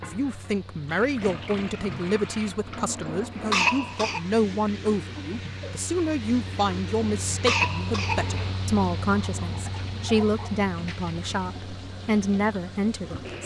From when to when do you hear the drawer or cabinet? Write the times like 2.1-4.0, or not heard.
not heard.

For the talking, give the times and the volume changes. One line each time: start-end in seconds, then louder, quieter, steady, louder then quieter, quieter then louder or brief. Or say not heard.
0.0-13.4 steady.